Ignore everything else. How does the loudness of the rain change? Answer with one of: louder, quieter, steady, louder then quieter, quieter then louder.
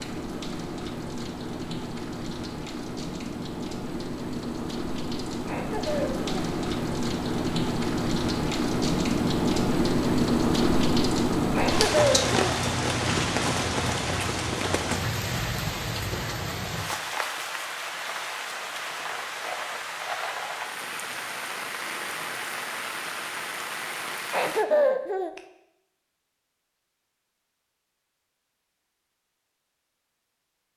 louder then quieter.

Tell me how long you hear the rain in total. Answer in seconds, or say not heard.
25 s.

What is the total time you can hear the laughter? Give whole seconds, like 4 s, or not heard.
3 s.